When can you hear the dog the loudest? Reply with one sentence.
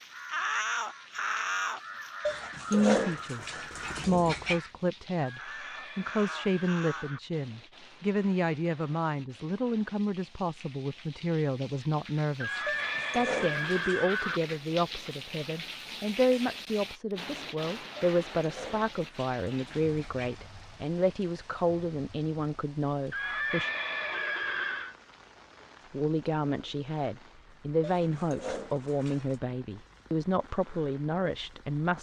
The volume of the dog peaks at 3 seconds.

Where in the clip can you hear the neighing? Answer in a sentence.
You can hear the neighing from 5.2 to 7.2 s, from 12.4 to 14.4 s and from 23.1 to 24.9 s.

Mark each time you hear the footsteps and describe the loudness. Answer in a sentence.
The footsteps can't be heard in this clip.